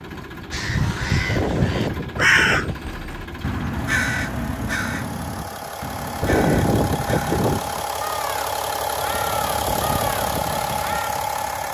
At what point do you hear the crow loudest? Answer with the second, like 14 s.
2 s.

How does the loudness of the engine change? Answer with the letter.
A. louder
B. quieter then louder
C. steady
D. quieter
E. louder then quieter
A.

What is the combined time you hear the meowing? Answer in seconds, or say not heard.
3 s.